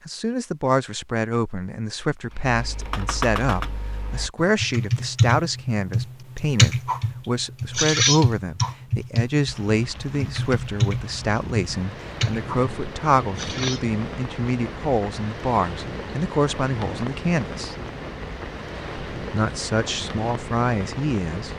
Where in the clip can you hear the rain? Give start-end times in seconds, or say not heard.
9.4-21.5.